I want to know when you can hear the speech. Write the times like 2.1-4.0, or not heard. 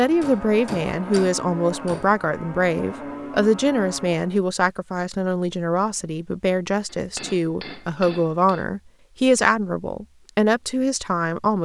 0.0-11.6.